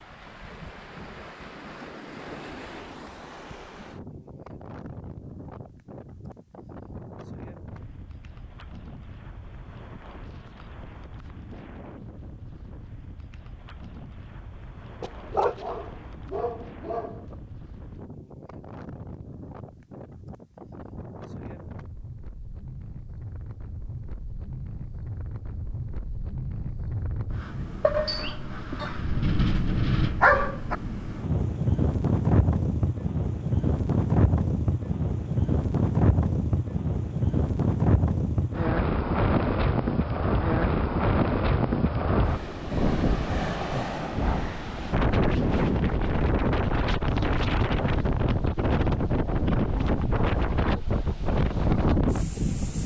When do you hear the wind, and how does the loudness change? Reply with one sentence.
You can hear the wind from 0.0 to 52.8 s, getting louder.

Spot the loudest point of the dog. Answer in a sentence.
The volume of the dog peaks at 30 seconds.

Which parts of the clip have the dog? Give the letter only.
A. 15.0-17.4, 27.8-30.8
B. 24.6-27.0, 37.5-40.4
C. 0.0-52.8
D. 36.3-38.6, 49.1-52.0
A.